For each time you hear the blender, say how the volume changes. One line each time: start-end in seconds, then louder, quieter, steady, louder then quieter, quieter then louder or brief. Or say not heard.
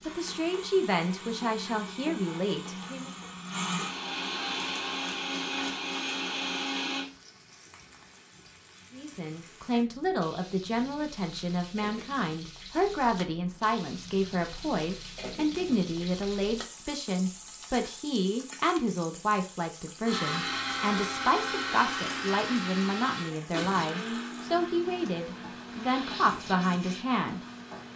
0.0-7.0 louder
20.0-27.9 quieter.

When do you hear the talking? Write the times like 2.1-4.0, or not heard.
0.1-3.1, 8.9-27.4.